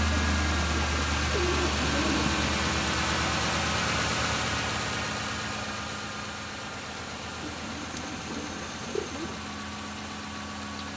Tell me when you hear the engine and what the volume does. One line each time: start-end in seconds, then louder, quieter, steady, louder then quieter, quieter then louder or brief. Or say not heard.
0.0-10.9 quieter.